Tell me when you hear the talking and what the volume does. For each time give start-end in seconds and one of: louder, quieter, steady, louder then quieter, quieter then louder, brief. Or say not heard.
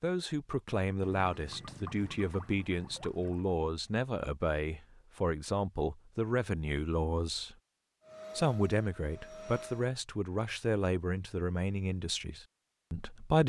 0.0-7.5 steady
8.3-13.4 quieter.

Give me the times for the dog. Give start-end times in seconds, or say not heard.
not heard.